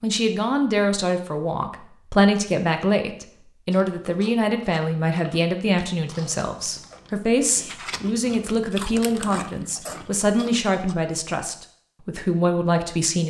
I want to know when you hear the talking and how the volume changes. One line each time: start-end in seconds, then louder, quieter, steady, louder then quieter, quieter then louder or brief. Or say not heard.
0.0-13.2 steady.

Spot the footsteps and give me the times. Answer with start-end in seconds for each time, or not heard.
not heard.